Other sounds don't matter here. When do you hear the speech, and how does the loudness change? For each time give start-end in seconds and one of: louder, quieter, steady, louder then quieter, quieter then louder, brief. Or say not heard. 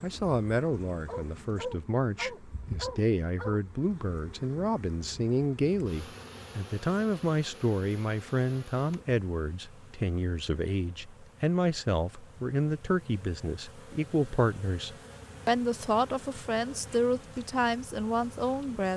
0.0-18.9 steady.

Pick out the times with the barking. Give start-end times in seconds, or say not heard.
1.1-3.6.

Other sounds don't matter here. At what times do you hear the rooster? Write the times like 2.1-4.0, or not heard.
not heard.